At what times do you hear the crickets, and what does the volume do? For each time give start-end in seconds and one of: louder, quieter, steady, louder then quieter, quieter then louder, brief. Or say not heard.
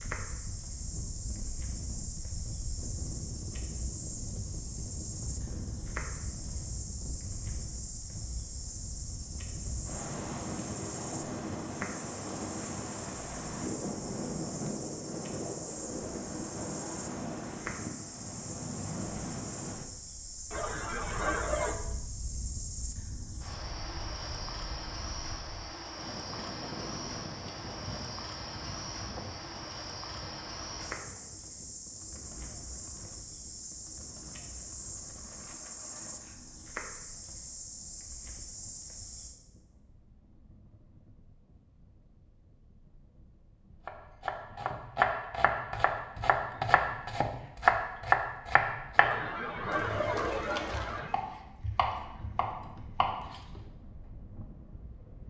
0.0-39.4 steady.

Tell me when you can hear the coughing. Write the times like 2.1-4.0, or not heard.
20.5-21.8, 49.0-51.1.